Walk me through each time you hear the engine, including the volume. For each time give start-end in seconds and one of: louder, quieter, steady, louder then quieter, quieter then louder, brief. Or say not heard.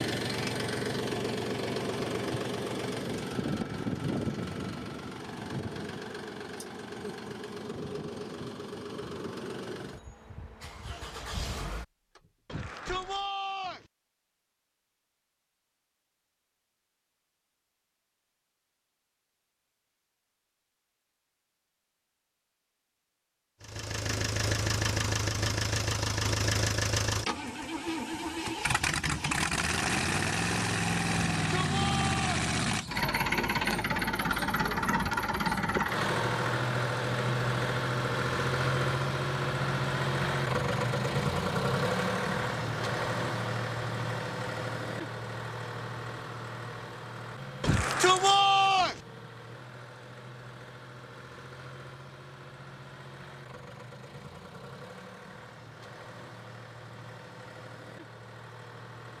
0.0-13.2 quieter
23.6-59.1 quieter.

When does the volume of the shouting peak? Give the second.
48 s.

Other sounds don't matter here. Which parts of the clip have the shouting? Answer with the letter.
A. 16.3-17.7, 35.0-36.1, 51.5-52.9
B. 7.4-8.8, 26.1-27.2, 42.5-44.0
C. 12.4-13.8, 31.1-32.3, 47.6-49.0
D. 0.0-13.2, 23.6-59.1
C.